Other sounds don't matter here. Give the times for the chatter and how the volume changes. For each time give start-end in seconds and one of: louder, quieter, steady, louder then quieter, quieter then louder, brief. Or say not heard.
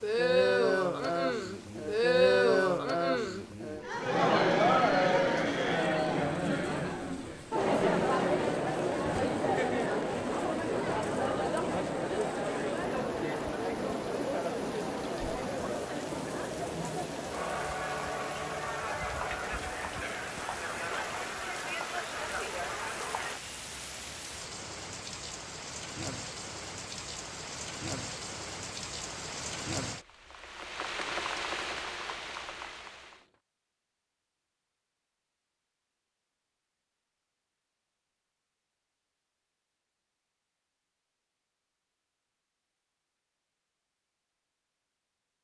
0.0-23.4 quieter.